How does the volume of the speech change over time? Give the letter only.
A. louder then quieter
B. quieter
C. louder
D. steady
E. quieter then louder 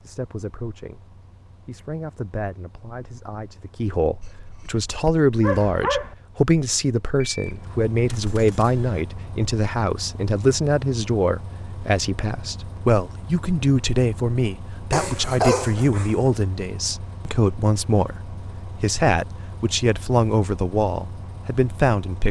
C.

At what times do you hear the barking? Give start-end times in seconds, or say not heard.
4.2-6.2, 14.9-16.4.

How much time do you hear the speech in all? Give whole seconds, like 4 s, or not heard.
22 s.